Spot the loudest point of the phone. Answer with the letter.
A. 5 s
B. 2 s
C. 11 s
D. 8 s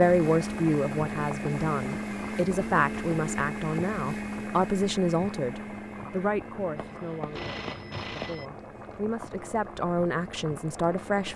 D.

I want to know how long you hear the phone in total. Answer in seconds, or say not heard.
2 s.